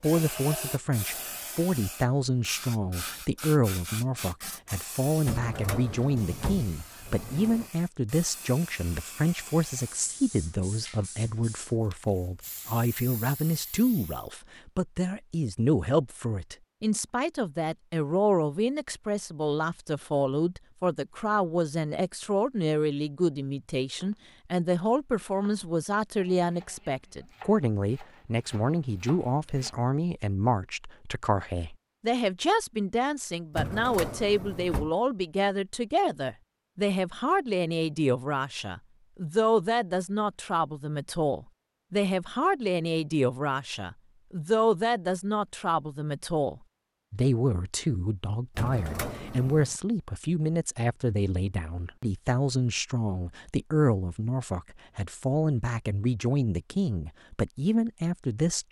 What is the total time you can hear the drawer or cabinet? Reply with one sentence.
The drawer or cabinet can be heard for 5 seconds in total.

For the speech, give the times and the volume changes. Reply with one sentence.
The speech can be heard from 0.0 to 58.6 s, at a steady volume.